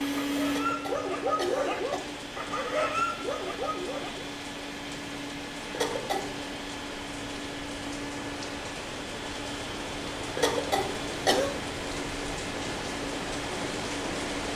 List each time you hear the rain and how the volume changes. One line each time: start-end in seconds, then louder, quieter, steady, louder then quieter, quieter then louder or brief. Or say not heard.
0.2-14.5 louder.